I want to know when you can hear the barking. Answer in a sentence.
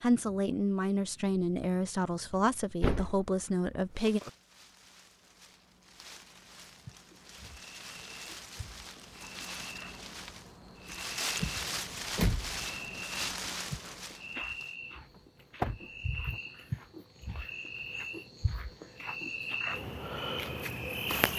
The barking can't be heard in this clip.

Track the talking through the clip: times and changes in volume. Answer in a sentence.
The talking can be heard from 0.0 to 4.2 s, at a steady volume.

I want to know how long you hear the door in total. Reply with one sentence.
You can hear the door for 4 seconds altogether.